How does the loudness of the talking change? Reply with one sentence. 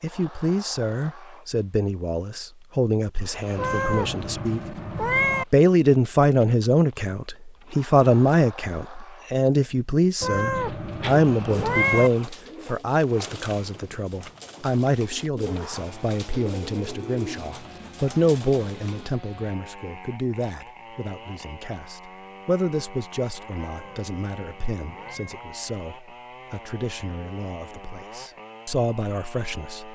The loudness of the talking goes down.